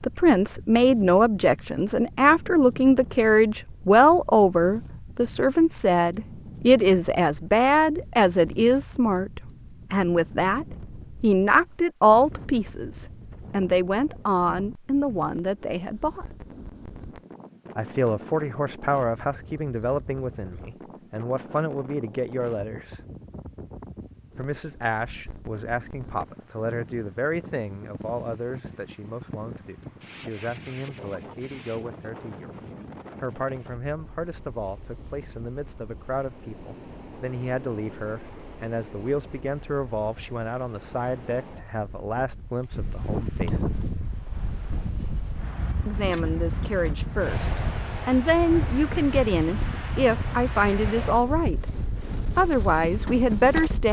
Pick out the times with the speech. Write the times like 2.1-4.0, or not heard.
0.0-16.2, 17.8-23.0, 24.4-32.5, 33.2-43.8, 45.9-51.6, 52.4-53.8.